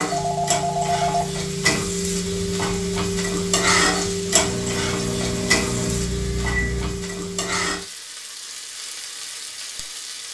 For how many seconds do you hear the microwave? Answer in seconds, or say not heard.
3 s.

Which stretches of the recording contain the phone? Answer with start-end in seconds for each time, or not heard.
0.1-1.9.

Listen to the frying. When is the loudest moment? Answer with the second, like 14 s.
4 s.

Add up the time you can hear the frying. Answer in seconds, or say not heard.
10 s.